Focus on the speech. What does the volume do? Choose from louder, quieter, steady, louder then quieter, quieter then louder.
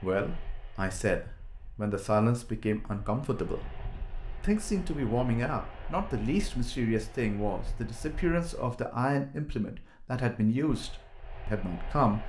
steady.